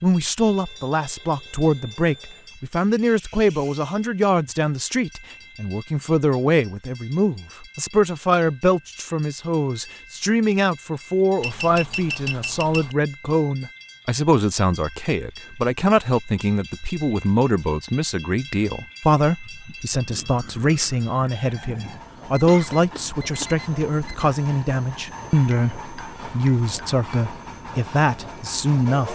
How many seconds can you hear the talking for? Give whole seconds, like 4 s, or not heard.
29 s.